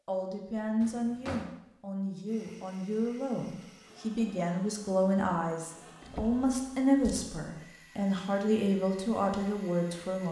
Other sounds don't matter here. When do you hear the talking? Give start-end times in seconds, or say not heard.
0.1-10.2.